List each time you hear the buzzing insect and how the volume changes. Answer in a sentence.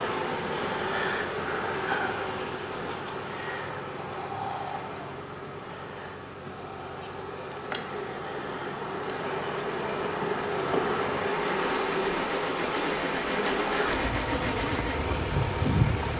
The buzzing insect can be heard from 0.0 to 16.1 s, getting quieter then louder.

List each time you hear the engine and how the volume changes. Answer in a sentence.
The engine can be heard from 0.0 to 16.1 s, getting louder.